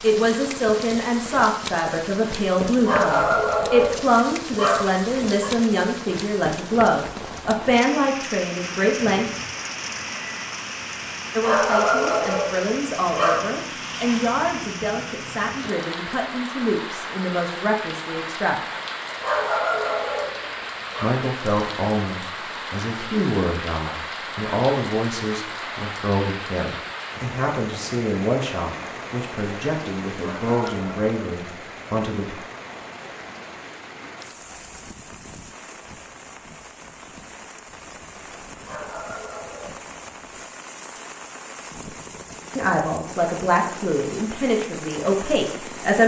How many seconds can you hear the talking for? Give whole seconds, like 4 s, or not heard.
31 s.